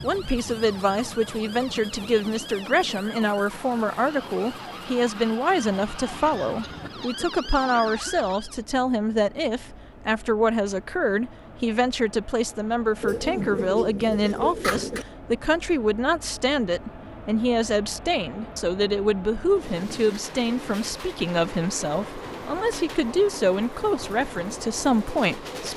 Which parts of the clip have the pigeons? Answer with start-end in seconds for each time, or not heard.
13.0-15.1.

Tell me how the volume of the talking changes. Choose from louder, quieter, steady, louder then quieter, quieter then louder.
steady.